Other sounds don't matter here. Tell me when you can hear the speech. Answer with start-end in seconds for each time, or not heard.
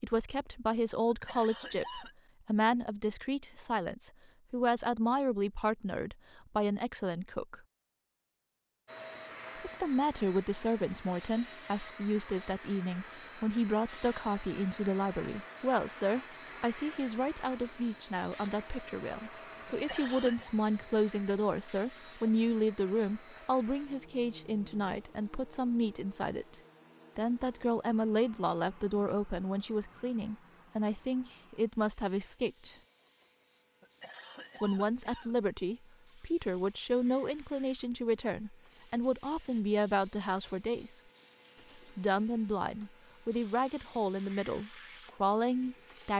0.0-7.6, 9.6-32.8, 34.6-41.0, 42.0-46.1.